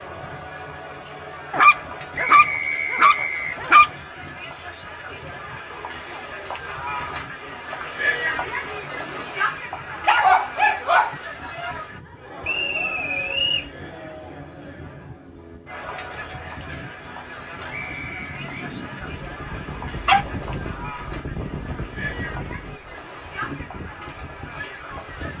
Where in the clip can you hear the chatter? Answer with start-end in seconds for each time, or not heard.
0.0-25.3.